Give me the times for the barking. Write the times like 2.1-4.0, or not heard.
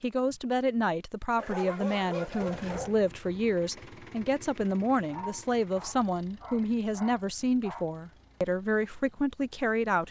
1.4-3.0, 5.1-7.8.